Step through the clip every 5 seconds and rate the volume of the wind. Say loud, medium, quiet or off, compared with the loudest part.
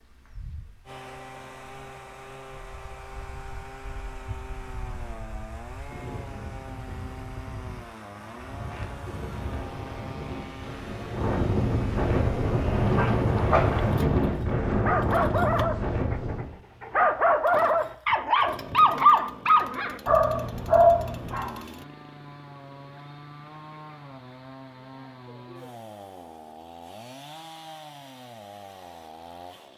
quiet, quiet, loud, loud, off, off.